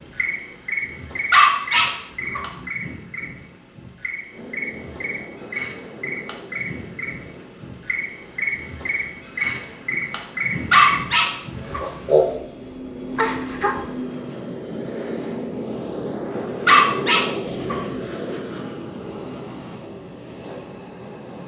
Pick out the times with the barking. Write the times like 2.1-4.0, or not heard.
1.3-2.6, 10.7-12.1, 16.6-18.0.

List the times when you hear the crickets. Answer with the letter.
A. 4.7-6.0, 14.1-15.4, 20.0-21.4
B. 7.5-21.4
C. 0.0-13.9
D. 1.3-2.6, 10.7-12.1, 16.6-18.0
C.